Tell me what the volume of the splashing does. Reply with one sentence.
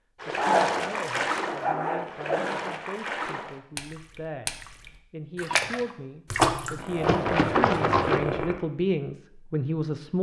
The volume of the splashing goes down, then up.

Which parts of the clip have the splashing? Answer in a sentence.
The splashing can be heard from 0.2 to 8.2 s.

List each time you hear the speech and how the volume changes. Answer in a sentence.
The speech can be heard from 0.2 to 10.1 s, getting louder.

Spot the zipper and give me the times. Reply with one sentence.
The zipper can be heard from 0.3 to 2.4 s and from 6.8 to 8.6 s.